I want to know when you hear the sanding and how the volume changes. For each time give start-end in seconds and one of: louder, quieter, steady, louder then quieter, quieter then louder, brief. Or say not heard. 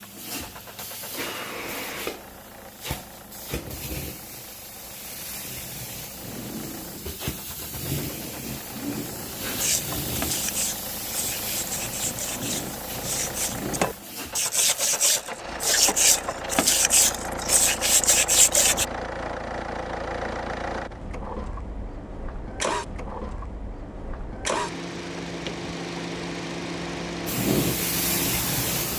9.6-18.9 louder.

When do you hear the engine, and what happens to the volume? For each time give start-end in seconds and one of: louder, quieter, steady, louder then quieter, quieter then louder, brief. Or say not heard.
0.0-28.9 louder.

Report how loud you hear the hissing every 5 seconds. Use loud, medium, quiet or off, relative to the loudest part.
medium, medium, medium, off, off, loud.